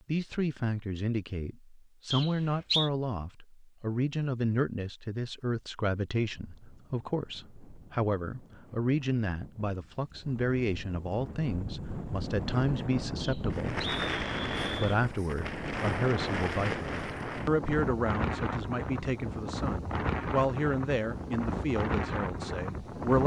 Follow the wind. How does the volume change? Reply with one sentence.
The loudness of the wind goes up.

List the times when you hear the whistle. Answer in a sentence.
The whistle can be heard from 2.1 to 2.9 s and from 13.2 to 15.0 s.